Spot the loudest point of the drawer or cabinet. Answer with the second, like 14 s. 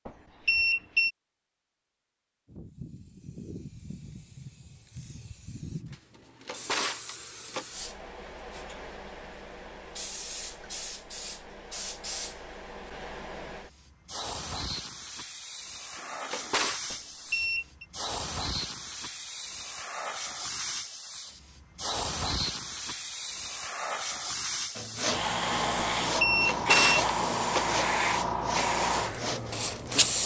27 s.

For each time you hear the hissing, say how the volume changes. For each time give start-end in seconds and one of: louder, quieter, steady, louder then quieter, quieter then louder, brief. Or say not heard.
2.5-30.2 louder.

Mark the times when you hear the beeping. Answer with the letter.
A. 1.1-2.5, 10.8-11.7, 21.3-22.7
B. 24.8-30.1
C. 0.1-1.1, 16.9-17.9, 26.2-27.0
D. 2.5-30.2
C.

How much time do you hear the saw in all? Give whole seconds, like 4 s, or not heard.
5 s.